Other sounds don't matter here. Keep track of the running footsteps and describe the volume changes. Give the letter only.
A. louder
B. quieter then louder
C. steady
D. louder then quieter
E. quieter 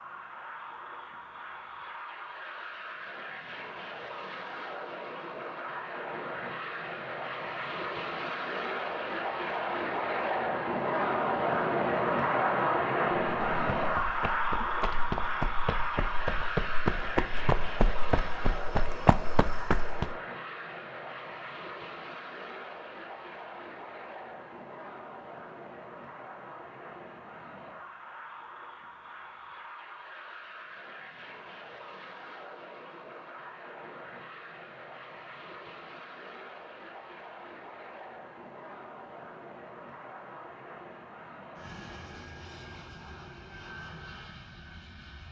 A.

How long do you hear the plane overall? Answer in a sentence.
You can hear the plane for 45 seconds altogether.